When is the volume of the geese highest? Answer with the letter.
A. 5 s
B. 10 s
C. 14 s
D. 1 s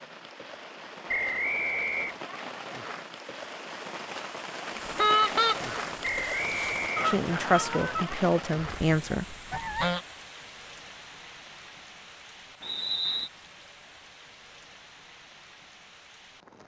A.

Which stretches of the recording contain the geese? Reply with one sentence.
The geese can be heard from 4.8 to 10.0 s.